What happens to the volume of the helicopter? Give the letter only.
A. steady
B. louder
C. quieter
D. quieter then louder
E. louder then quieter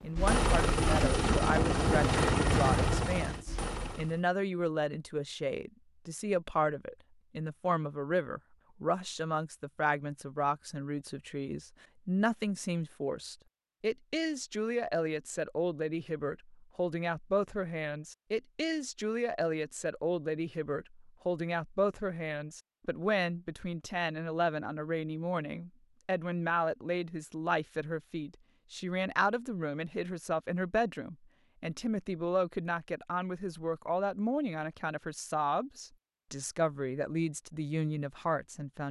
C.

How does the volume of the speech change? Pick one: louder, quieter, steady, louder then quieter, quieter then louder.
steady.